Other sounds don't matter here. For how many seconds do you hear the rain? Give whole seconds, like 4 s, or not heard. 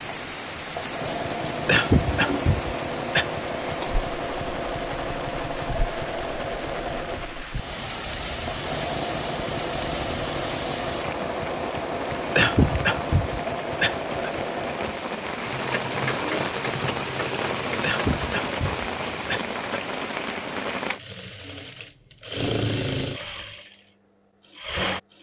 21 s.